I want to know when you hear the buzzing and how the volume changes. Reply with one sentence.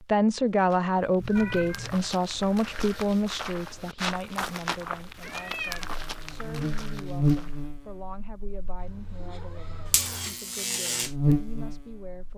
The buzzing can be heard from 5.8 to 12.3 s, getting quieter then louder.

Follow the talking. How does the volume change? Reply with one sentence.
The volume of the talking goes down.